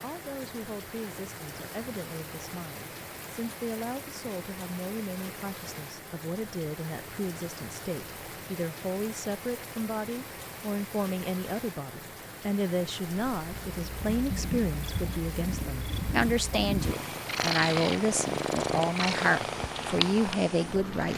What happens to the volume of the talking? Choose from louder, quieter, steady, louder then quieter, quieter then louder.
louder.